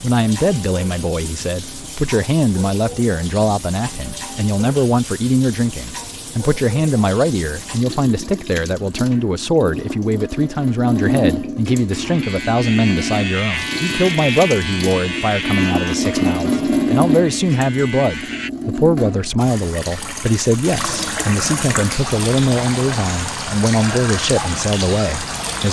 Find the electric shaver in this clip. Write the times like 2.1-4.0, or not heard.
11.9-18.5.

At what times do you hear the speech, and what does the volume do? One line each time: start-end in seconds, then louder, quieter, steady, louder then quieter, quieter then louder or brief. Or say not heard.
0.0-25.6 steady.